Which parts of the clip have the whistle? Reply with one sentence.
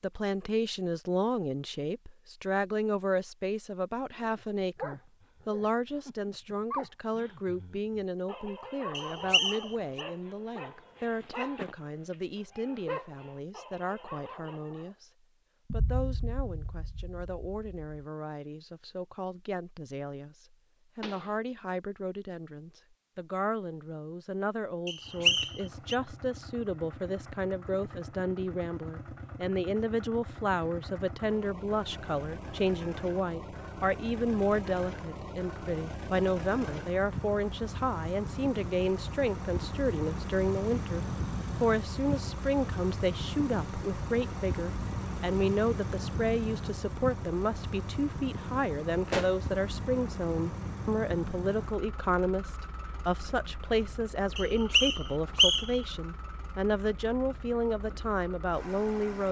You can hear the whistle from 8.9 to 10.0 s, from 24.9 to 25.9 s and from 54.4 to 55.8 s.